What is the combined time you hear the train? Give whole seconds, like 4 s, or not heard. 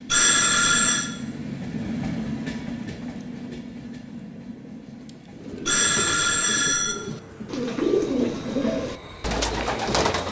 10 s.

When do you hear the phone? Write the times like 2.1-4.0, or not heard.
0.1-1.1, 5.7-7.0.